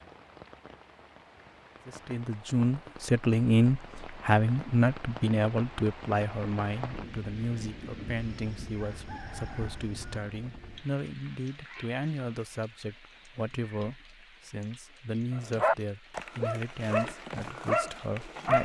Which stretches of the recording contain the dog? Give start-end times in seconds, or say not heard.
15.3-18.5.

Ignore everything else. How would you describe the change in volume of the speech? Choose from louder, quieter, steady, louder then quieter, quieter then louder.
quieter.